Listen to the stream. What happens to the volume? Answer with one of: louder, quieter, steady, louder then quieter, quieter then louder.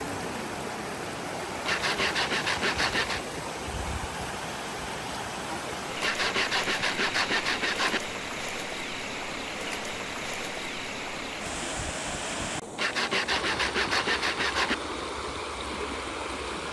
steady.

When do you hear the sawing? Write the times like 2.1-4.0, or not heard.
1.6-3.2, 6.0-8.0, 12.8-14.8.